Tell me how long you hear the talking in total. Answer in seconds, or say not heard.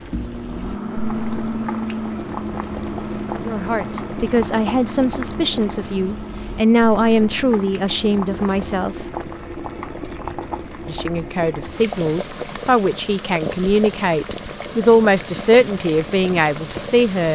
12 s.